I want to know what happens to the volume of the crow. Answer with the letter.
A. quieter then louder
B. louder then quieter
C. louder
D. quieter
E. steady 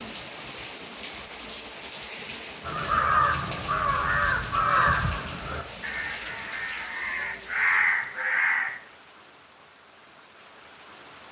A.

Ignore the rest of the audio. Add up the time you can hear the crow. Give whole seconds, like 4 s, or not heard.
6 s.